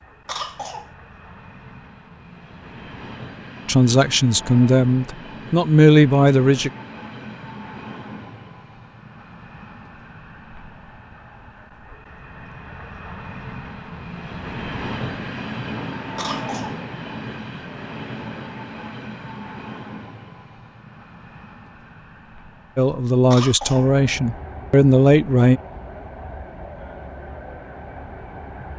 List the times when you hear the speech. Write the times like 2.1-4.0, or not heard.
3.6-6.7, 22.8-25.6.